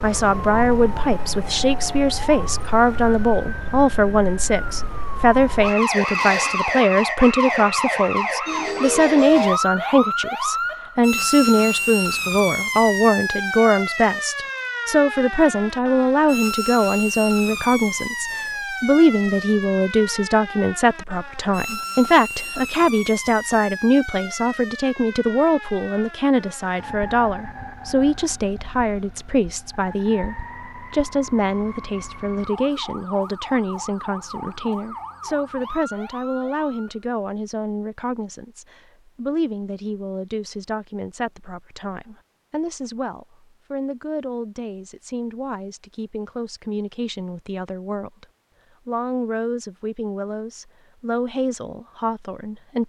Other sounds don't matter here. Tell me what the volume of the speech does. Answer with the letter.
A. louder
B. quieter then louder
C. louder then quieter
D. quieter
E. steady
D.